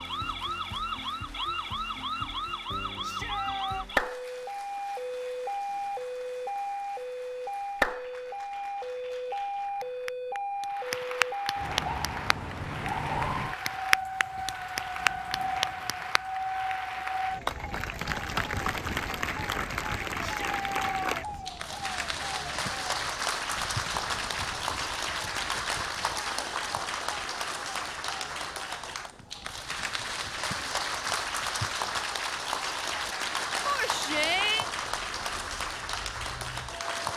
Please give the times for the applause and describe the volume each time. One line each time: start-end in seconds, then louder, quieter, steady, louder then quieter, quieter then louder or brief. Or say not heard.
0.0-37.1 louder.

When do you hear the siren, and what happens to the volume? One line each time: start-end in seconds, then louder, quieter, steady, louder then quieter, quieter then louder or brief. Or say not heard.
0.0-37.1 quieter.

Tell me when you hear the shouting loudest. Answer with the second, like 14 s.
34 s.